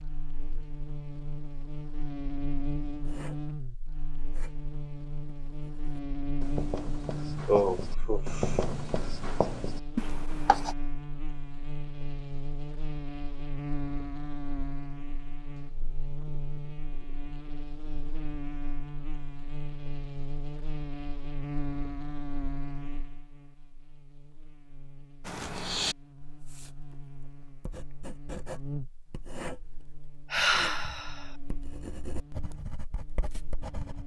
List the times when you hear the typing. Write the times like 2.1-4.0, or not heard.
not heard.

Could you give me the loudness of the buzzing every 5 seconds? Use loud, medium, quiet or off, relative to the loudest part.
loud, loud, loud, loud, loud, medium, quiet.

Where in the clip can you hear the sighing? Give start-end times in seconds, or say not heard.
7.3-8.6, 30.3-31.3.